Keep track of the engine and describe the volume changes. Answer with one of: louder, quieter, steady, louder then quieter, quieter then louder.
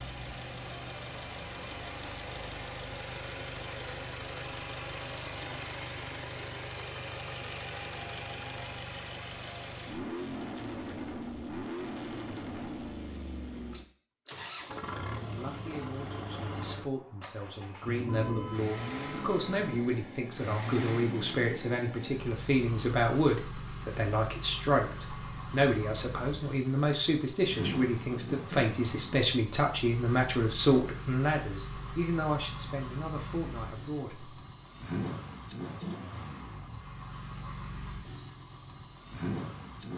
steady.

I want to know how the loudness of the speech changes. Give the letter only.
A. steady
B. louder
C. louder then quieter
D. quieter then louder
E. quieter
B.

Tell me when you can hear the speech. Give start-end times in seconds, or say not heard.
15.3-34.4.